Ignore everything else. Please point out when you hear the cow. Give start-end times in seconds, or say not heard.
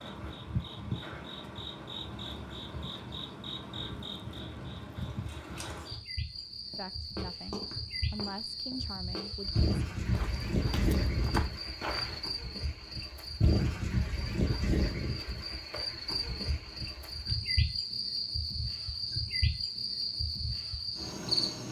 not heard.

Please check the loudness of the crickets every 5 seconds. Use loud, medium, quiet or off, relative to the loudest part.
medium, medium, loud, loud, loud.